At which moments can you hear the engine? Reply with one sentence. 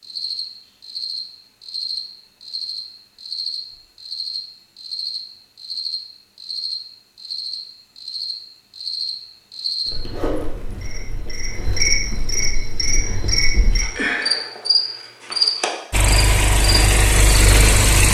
The engine can be heard from 15.9 to 18.0 s.